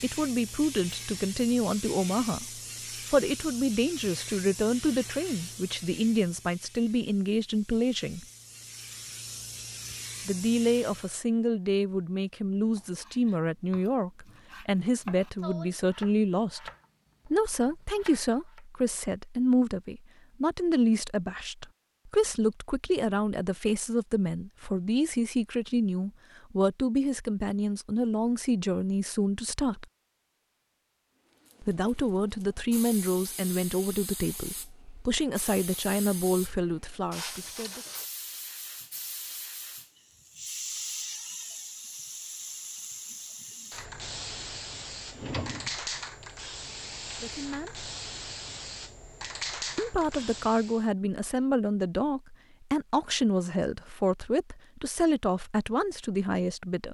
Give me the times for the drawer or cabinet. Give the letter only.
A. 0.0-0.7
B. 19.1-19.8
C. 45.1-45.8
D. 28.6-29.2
C.